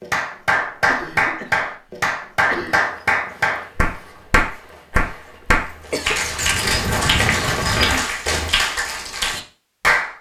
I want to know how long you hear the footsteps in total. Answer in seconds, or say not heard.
6 s.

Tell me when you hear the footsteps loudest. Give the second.
8 s.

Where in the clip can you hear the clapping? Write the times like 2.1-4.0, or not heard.
0.0-10.1.